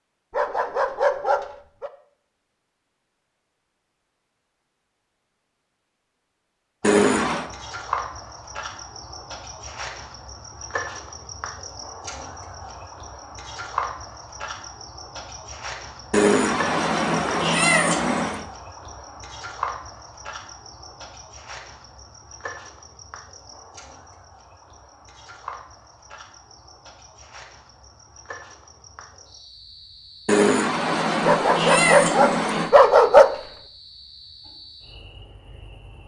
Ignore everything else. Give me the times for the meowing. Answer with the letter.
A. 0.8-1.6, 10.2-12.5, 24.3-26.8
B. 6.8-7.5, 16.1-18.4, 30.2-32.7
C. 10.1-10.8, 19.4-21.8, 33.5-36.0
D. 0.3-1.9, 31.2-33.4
B.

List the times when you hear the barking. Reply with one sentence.
The barking can be heard from 0.3 to 1.9 s and from 31.2 to 33.4 s.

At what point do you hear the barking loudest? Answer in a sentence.
The loudest moment of the barking is at 33 seconds.